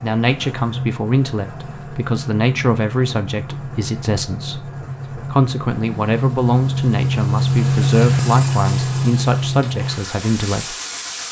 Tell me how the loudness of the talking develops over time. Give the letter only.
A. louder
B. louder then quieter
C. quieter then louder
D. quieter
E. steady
E.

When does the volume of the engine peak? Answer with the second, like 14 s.
8 s.